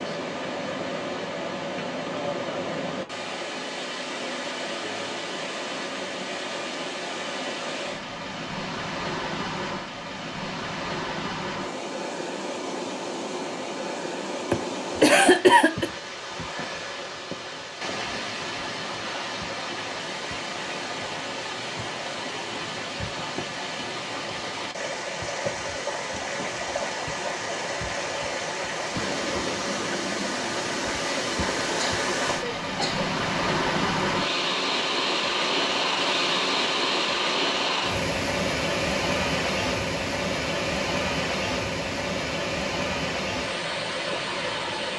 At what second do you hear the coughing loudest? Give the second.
15 s.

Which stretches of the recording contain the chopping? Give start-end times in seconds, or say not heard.
not heard.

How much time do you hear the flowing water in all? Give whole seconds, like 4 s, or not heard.
45 s.